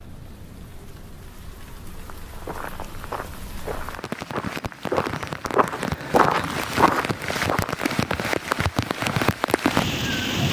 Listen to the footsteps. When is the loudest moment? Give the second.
6 s.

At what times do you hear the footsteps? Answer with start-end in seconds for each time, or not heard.
2.3-7.8.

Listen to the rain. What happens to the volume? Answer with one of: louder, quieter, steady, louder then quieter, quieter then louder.
louder.